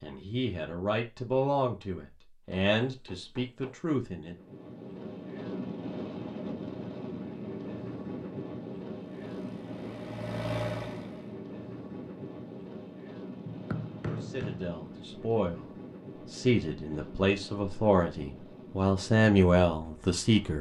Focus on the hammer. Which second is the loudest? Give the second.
14 s.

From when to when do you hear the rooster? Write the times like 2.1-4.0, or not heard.
not heard.